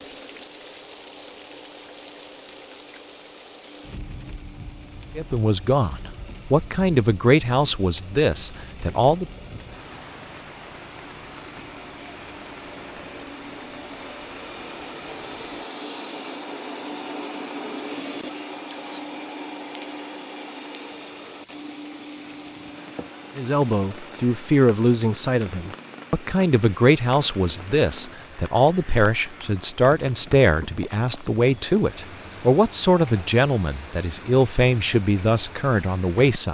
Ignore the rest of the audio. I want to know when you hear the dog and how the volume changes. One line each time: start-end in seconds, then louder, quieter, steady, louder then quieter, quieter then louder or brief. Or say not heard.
not heard.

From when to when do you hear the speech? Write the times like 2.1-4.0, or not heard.
5.2-9.2, 23.4-36.4.